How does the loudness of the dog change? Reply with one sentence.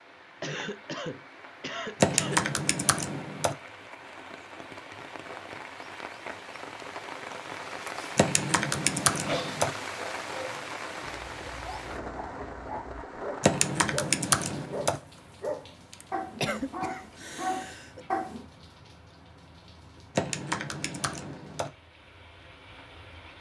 The loudness of the dog goes up.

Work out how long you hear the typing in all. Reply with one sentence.
You can hear the typing for 6 seconds altogether.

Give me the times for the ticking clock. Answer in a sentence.
You can't hear the ticking clock here.